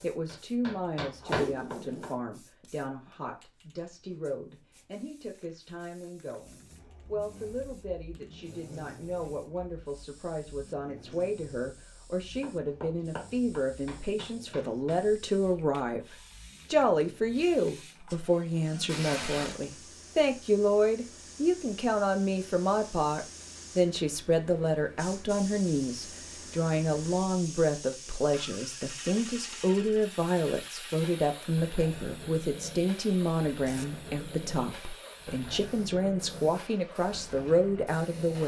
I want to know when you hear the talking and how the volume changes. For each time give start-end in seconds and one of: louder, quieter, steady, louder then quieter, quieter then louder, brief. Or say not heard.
0.0-38.4 louder.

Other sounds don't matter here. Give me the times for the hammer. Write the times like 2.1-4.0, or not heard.
0.0-2.2, 12.4-15.1.